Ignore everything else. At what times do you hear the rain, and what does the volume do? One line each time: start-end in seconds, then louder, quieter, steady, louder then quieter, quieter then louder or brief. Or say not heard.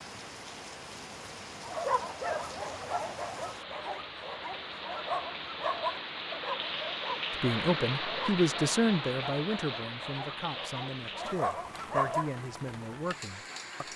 0.0-13.9 louder then quieter.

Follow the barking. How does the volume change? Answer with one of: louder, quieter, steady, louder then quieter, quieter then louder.
quieter then louder.